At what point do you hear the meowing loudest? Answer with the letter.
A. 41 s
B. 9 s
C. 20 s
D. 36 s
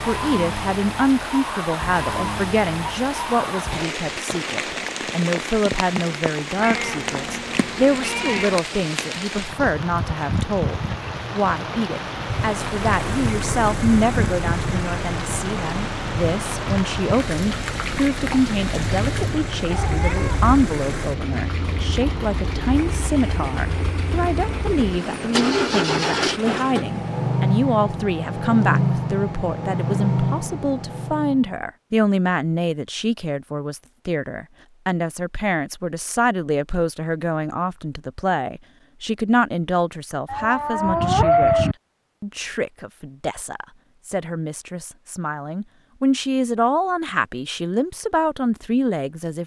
A.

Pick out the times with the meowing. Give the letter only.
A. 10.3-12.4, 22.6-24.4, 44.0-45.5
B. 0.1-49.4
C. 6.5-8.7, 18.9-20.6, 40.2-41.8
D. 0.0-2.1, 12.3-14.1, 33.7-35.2
C.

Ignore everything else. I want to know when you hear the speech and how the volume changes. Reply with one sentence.
You can hear the speech from 0.1 to 49.4 s, at a steady volume.